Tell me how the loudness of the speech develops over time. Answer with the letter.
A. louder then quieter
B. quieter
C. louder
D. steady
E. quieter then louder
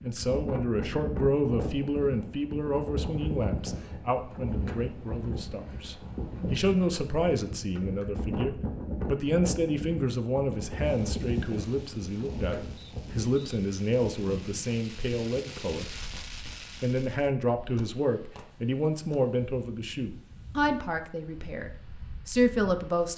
D.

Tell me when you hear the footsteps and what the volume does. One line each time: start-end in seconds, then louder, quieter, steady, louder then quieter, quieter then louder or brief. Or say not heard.
not heard.